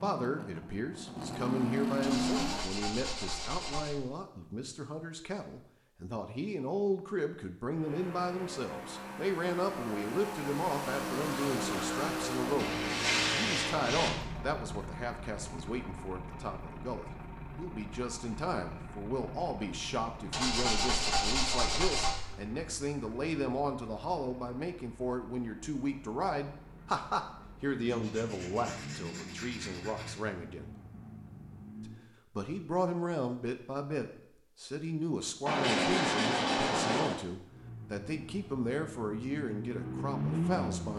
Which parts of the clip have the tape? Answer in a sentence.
The tape can't be heard in this clip.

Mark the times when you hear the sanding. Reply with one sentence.
The sanding can be heard from 2.0 to 4.0 s, from 12.6 to 14.1 s, from 20.3 to 22.1 s, from 27.8 to 30.1 s and from 35.5 to 37.1 s.